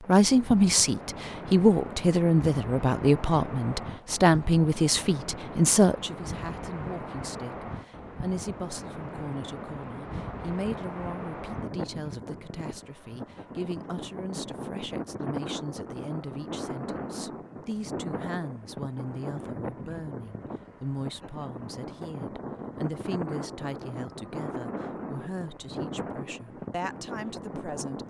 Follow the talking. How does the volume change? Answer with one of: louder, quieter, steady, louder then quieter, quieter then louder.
quieter.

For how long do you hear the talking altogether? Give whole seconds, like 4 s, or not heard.
28 s.